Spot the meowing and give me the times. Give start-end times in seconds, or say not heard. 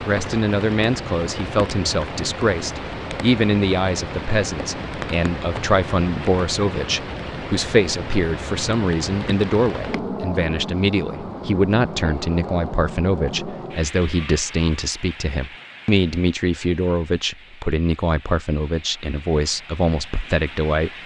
not heard.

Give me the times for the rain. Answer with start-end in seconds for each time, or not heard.
0.0-21.0.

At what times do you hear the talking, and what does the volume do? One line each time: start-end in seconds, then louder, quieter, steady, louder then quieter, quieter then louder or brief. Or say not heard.
0.1-20.9 steady.